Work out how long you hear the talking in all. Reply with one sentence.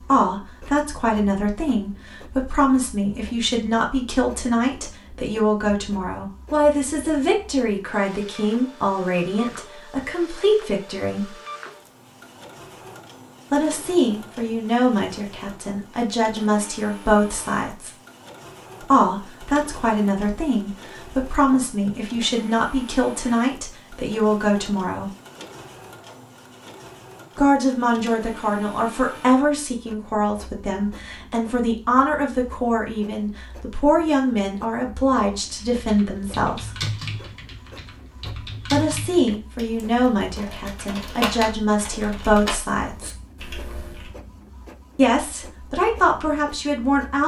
The talking can be heard for 38 seconds in total.